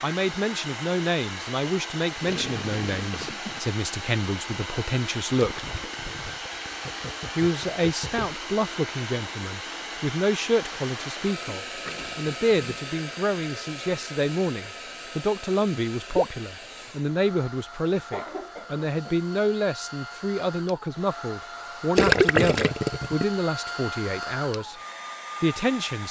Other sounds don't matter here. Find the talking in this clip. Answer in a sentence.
The talking can be heard from 0.0 to 5.7 s, from 7.3 to 24.8 s and from 25.4 to 26.0 s.